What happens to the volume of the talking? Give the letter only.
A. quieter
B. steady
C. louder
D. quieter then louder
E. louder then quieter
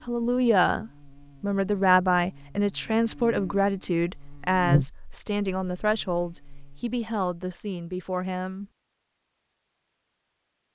A.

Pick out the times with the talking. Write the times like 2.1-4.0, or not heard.
0.1-8.7.